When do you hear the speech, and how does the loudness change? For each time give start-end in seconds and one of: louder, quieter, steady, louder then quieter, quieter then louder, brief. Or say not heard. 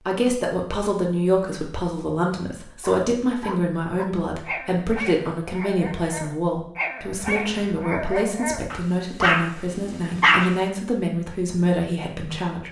0.0-12.6 steady.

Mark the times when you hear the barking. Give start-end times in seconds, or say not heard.
2.8-10.6.